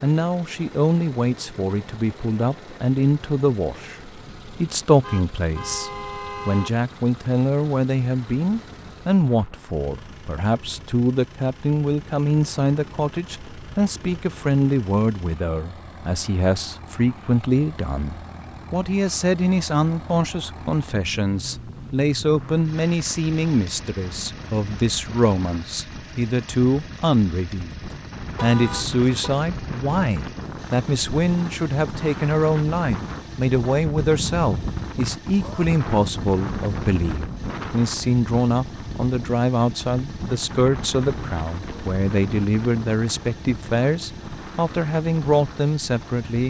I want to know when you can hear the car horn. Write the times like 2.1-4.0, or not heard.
5.0-6.7, 28.4-29.3.